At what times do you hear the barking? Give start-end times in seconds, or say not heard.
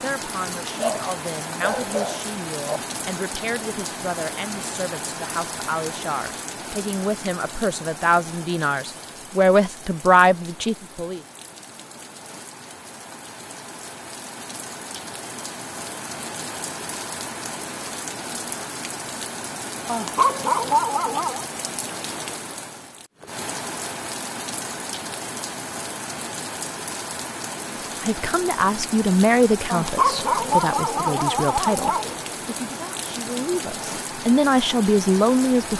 0.8-2.8, 19.9-21.4, 29.7-32.2.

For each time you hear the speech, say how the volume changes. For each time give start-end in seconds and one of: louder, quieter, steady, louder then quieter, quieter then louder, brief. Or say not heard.
0.0-11.2 louder
28.0-35.7 quieter then louder.